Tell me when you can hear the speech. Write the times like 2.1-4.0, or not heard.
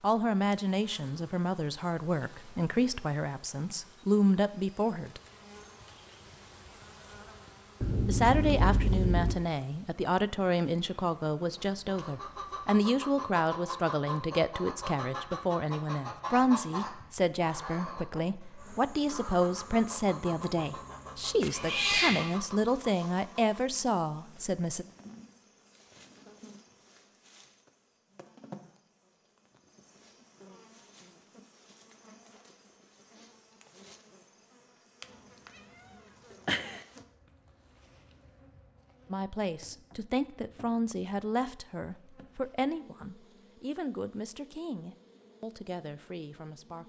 0.0-5.2, 8.1-24.9, 39.1-46.8.